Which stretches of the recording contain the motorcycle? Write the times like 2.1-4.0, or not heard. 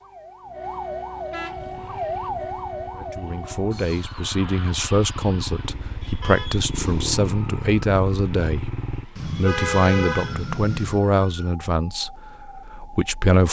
1.5-9.1.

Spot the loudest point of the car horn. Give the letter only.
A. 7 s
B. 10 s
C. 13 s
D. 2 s
B.